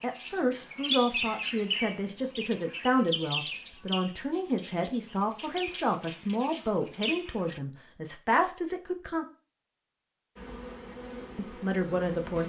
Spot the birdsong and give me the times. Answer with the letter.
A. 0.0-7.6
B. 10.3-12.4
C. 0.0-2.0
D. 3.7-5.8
A.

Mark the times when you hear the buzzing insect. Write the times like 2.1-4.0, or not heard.
10.3-12.4.